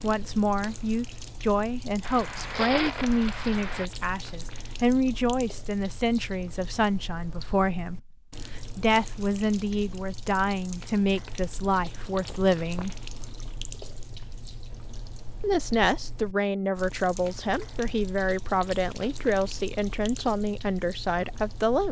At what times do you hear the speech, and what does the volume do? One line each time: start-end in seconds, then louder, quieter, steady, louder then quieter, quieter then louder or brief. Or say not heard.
0.0-12.9 steady
15.4-21.8 steady.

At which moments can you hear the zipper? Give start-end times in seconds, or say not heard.
2.0-3.9, 11.7-13.3.